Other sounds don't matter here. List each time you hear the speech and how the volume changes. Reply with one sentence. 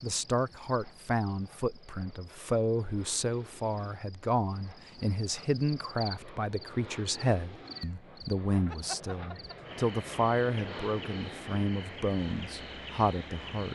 You can hear the speech from 0.0 to 13.7 s, at a steady volume.